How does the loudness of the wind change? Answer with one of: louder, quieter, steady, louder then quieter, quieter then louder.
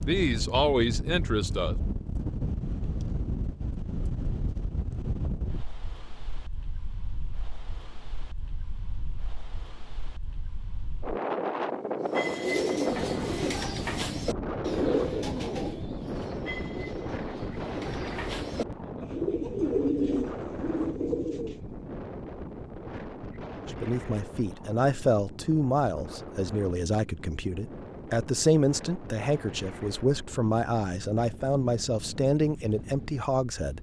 quieter.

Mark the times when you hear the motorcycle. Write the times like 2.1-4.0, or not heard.
not heard.